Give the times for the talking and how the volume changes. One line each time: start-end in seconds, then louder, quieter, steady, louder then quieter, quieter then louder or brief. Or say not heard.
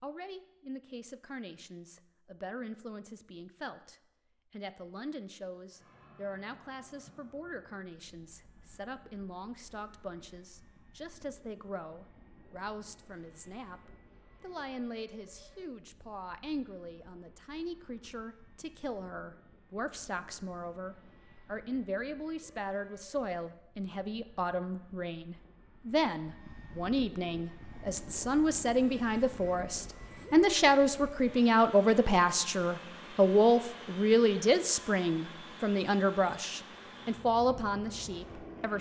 0.0-38.7 louder.